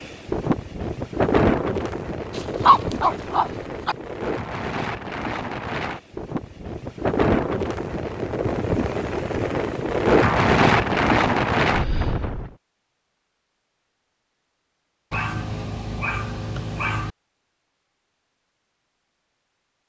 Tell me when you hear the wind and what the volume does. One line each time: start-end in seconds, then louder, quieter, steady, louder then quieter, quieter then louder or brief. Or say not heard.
0.0-12.5 quieter then louder.